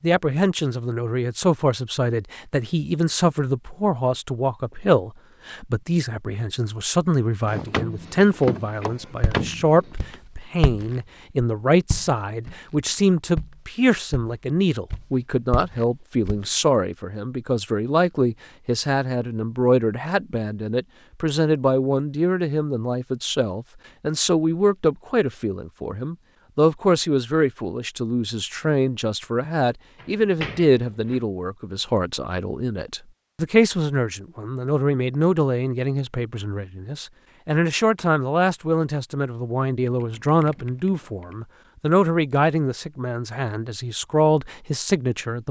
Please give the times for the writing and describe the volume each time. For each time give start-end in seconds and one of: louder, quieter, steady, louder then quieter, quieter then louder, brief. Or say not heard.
not heard.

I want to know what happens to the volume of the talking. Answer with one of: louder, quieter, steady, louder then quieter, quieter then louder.
steady.